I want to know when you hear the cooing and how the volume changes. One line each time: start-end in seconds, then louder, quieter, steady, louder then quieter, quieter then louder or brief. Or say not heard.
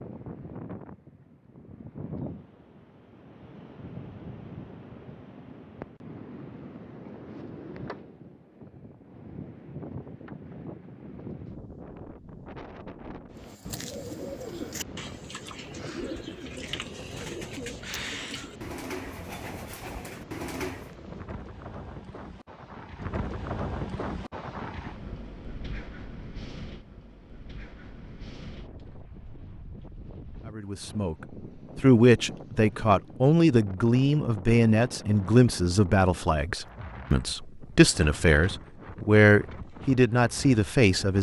13.4-20.9 steady.